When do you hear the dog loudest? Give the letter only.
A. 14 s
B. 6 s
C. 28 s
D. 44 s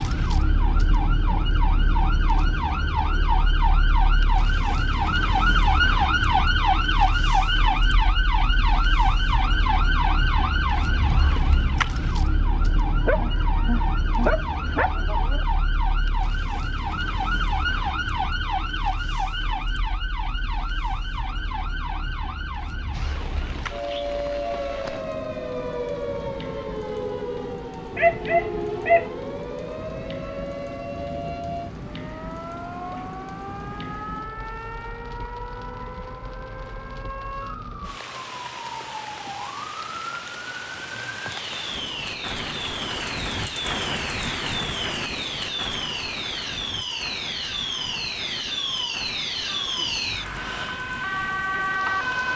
C.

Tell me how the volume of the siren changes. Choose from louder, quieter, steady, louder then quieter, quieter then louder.
quieter then louder.